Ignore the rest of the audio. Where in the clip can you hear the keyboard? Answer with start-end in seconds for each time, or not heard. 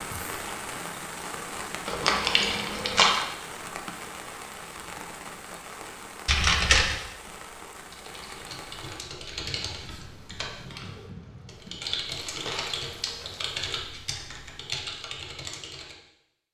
7.8-15.9.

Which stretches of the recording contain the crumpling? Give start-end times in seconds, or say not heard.
1.9-3.2, 6.2-7.0, 12.3-13.4.